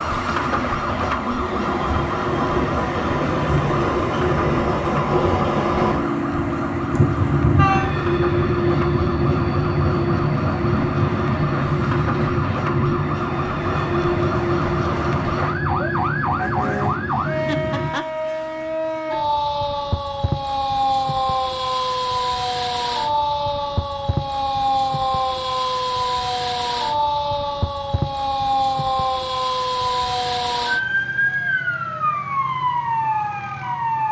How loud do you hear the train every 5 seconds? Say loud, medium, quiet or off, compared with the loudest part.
loud, loud, loud, medium, off, off, off.